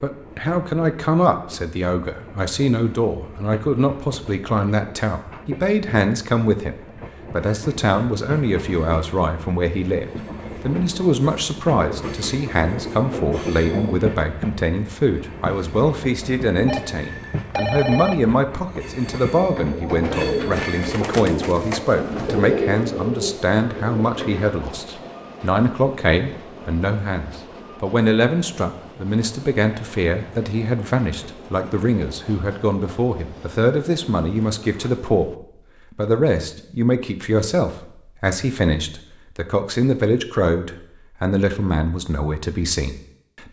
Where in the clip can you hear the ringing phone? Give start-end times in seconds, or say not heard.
16.6-18.2.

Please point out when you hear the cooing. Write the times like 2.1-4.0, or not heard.
18.8-24.6.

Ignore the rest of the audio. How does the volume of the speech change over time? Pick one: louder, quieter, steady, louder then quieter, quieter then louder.
steady.